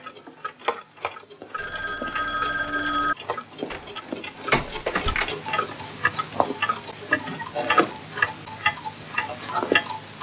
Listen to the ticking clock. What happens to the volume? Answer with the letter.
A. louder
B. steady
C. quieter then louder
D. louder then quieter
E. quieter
A.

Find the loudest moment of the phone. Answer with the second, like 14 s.
3 s.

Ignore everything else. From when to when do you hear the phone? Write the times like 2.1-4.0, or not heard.
1.6-3.1.